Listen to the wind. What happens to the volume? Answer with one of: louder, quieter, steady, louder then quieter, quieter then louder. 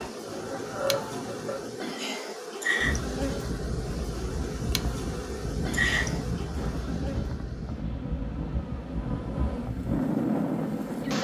louder.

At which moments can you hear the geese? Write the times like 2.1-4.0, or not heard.
0.0-1.9.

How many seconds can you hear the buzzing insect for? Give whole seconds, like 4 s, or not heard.
11 s.